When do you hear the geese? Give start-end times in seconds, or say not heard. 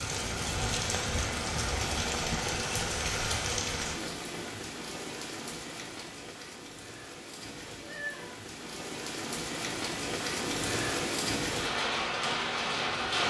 not heard.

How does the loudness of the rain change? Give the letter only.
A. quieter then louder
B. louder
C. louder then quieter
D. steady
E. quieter
A.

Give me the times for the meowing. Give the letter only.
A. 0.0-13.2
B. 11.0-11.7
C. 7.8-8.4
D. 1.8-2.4
C.